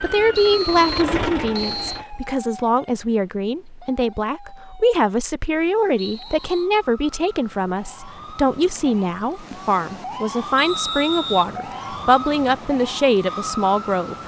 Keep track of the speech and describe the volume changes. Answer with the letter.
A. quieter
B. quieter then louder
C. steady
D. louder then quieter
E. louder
C.